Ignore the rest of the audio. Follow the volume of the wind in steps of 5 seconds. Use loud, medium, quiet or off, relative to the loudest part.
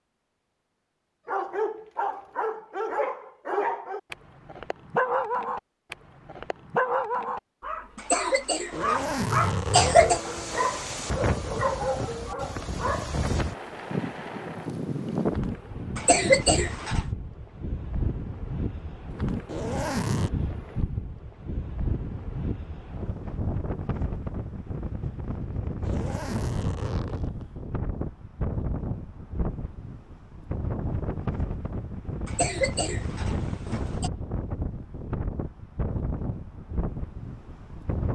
off, off, loud, loud, loud, loud, loud, loud.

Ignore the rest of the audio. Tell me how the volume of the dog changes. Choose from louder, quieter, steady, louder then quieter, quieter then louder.
steady.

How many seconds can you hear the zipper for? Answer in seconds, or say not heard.
4 s.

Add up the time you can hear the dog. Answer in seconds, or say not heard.
12 s.